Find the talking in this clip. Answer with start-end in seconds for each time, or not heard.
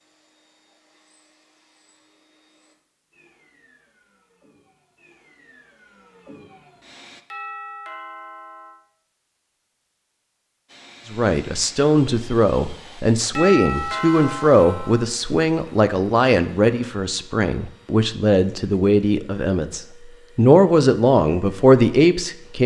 11.1-22.6.